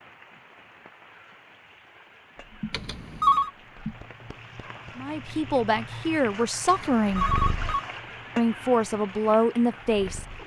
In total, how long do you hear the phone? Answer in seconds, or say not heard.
2 s.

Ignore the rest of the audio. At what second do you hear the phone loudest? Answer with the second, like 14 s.
3 s.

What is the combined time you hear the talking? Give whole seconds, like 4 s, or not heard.
4 s.